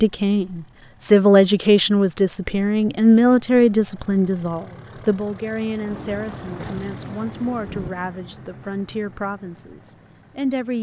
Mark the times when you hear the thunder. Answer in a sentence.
The thunder can be heard from 5.8 to 7.9 s.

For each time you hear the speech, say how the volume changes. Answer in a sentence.
You can hear the speech from 0.0 to 10.7 s, getting quieter.